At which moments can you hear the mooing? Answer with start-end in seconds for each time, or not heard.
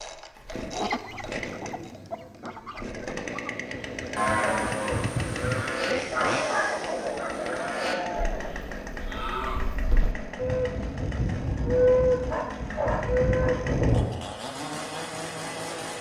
4.2-14.1.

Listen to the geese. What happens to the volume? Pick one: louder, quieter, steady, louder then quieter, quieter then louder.
louder.